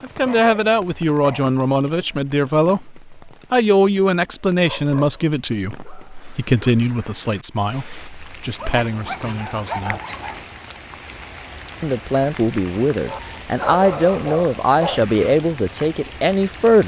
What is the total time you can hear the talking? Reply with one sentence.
You can hear the talking for 15 seconds altogether.